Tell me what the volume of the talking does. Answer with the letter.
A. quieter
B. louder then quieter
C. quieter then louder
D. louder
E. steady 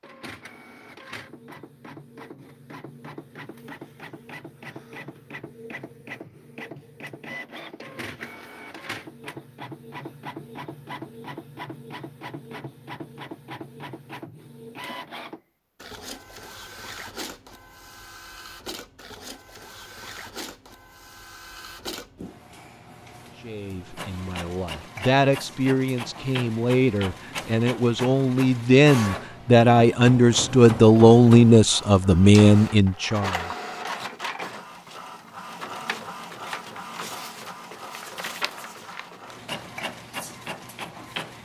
D.